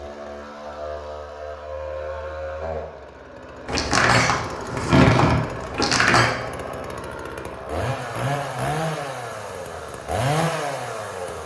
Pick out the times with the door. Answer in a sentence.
The door can be heard from 3.6 to 6.3 s.